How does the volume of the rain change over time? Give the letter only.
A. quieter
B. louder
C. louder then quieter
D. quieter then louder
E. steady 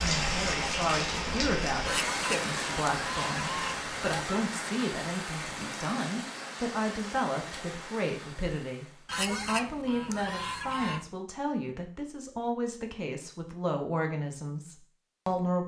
A.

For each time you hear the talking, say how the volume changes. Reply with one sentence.
The talking can be heard from 0.0 to 15.6 s, at a steady volume.